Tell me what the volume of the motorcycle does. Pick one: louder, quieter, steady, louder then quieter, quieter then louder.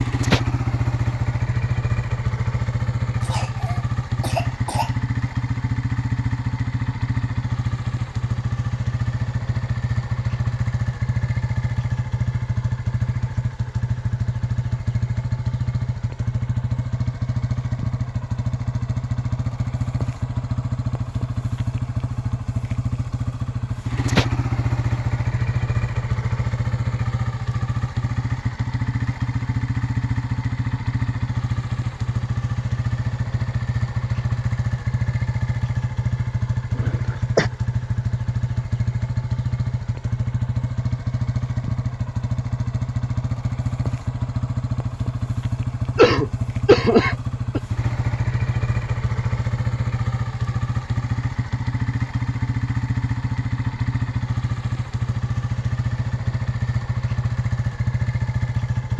steady.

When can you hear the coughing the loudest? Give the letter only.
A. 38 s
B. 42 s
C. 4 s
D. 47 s
D.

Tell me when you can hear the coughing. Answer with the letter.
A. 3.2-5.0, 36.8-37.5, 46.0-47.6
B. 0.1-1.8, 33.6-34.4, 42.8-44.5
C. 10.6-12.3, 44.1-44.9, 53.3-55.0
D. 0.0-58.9
A.